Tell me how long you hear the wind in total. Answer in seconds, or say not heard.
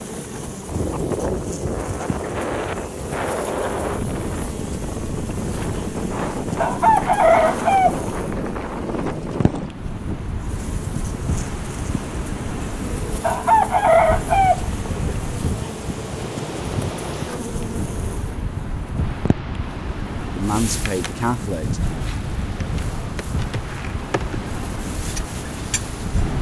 26 s.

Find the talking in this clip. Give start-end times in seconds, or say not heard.
20.4-21.9.